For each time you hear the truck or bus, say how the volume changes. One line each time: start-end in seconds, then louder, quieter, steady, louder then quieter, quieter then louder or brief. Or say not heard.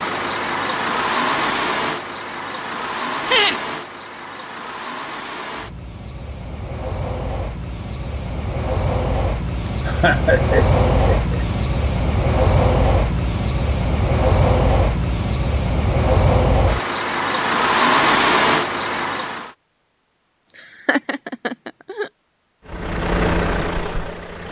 0.0-19.5 quieter then louder
22.6-24.4 brief.